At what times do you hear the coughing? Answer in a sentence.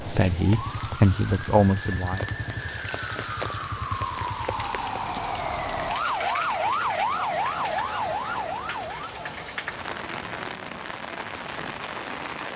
The coughing can't be heard in this clip.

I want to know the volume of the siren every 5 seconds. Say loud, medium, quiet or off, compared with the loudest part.
medium, loud, off.